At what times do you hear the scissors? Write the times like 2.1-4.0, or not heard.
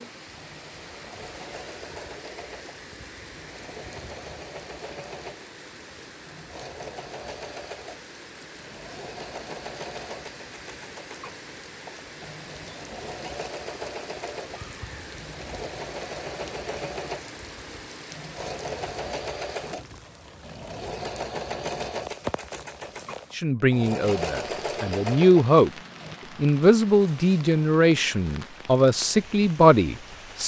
not heard.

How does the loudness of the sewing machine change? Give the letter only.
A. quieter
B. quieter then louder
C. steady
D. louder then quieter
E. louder
E.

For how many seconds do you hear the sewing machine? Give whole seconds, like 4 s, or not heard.
26 s.